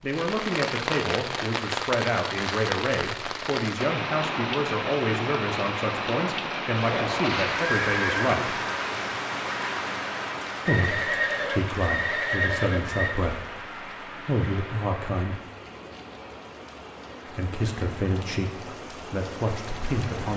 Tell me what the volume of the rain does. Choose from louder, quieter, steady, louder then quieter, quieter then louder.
quieter.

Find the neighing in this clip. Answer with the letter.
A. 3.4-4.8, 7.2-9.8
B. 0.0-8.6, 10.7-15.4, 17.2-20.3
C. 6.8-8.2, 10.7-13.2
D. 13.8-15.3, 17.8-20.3
C.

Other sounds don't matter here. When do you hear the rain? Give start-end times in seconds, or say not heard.
0.0-20.3.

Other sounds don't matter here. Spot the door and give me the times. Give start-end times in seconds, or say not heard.
not heard.